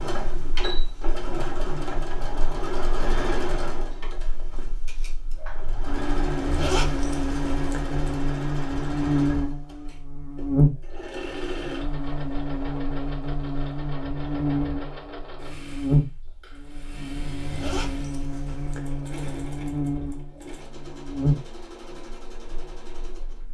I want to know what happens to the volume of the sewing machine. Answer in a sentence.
The loudness of the sewing machine goes down.